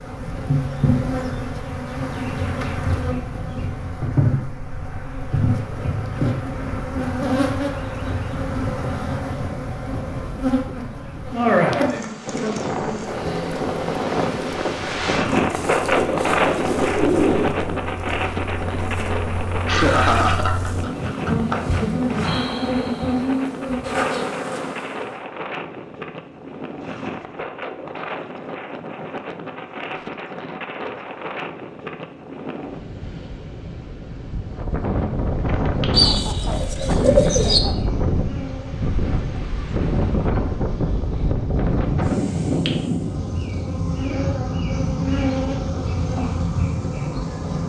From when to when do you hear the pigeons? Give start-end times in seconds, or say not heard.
15.8-17.6, 35.9-37.6.